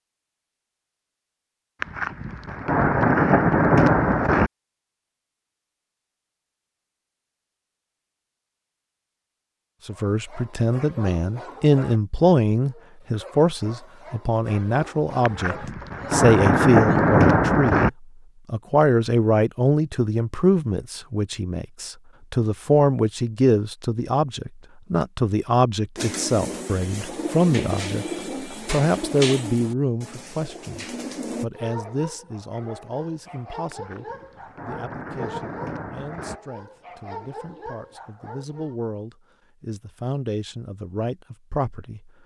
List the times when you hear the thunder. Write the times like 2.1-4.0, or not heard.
1.8-4.5, 15.2-17.9, 33.7-36.4.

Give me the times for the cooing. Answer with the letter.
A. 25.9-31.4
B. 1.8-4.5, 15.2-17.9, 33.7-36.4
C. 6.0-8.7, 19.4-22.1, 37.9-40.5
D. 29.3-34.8
A.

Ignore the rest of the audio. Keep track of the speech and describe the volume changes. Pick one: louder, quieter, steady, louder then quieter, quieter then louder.
quieter.